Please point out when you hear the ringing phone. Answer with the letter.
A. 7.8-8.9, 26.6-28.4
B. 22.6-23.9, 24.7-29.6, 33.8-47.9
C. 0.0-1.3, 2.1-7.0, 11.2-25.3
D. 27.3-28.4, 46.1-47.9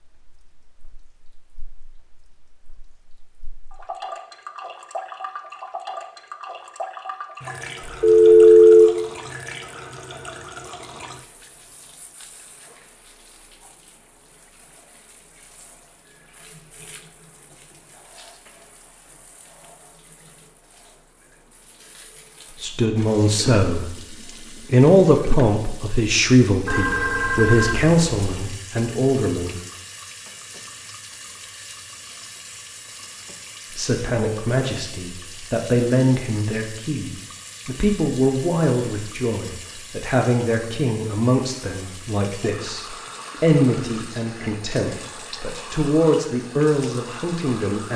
A.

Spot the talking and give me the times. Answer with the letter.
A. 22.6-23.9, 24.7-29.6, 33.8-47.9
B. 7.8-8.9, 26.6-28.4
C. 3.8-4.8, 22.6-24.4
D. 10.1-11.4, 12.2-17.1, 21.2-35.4
A.